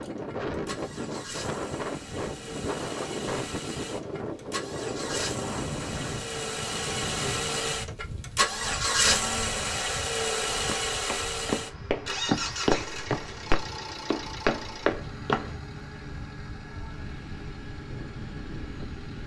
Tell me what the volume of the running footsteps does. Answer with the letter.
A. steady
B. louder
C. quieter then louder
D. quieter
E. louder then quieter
B.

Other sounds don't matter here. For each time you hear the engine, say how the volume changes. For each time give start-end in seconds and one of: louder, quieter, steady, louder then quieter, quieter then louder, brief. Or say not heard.
0.0-19.2 louder then quieter.